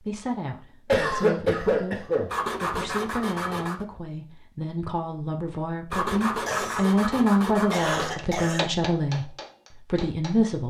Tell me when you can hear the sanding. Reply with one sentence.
You can hear the sanding from 2.3 to 3.9 s and from 5.9 to 8.1 s.